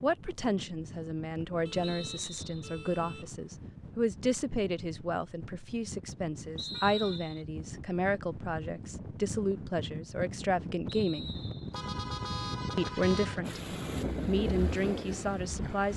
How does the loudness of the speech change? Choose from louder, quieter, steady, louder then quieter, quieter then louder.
steady.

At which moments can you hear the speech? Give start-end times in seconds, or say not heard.
0.0-11.4, 12.8-15.9.